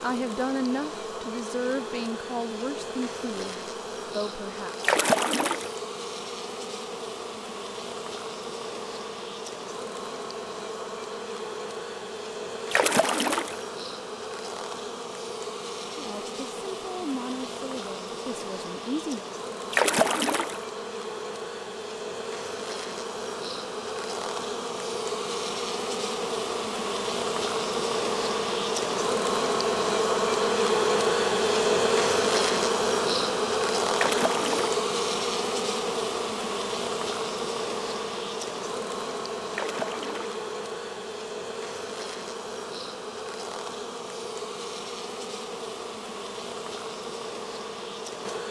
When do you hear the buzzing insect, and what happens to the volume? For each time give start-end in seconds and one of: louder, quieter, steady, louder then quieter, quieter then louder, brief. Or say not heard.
0.0-48.4 louder then quieter.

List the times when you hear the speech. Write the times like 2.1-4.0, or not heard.
0.0-4.8, 15.9-19.2.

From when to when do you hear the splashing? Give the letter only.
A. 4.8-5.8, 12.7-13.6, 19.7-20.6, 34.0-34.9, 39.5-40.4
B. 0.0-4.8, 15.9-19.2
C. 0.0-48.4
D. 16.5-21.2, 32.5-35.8
A.